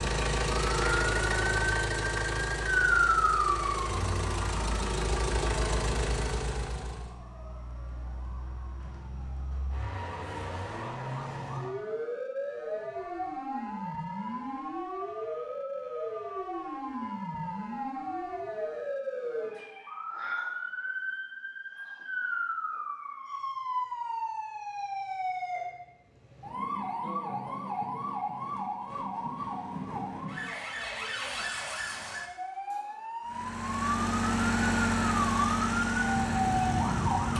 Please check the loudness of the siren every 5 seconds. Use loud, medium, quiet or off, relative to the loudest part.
loud, quiet, medium, medium, medium, medium, medium, loud.